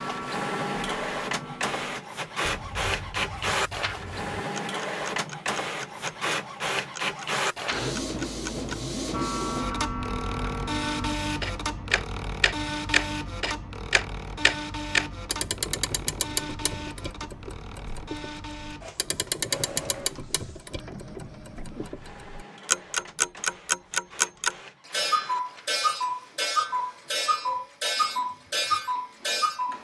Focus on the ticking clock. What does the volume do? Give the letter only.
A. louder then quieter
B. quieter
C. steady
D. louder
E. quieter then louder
D.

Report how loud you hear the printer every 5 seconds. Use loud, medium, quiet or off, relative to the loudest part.
loud, loud, loud, medium, quiet, quiet.